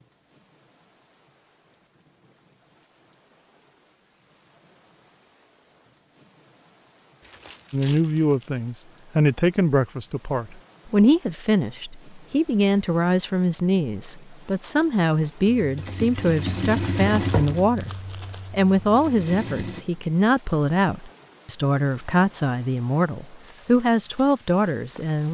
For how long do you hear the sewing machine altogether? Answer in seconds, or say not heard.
4 s.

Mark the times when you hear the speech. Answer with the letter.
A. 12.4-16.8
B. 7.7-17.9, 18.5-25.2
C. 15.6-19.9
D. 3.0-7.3
B.